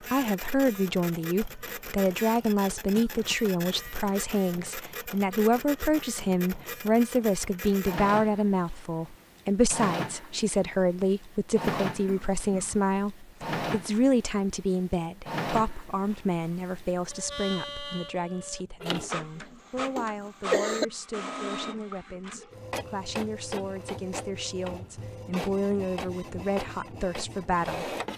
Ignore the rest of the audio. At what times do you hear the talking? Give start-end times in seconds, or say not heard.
0.1-27.9.